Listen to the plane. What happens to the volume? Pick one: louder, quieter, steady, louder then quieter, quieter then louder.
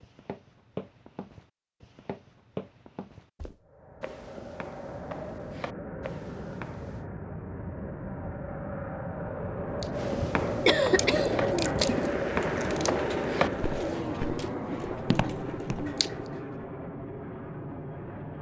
louder then quieter.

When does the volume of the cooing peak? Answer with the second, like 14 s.
12 s.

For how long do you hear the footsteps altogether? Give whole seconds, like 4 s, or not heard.
13 s.